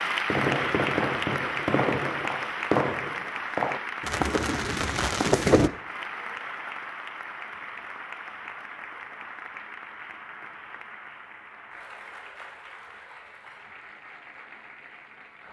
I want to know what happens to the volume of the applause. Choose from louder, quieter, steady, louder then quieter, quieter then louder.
quieter.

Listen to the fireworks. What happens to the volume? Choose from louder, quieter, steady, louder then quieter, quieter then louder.
steady.